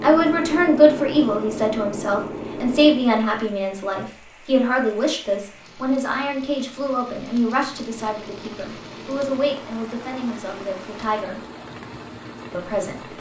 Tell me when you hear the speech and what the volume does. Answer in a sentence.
The speech can be heard from 0.0 to 11.4 s, getting quieter; and briefly from 12.5 to 13.1 s.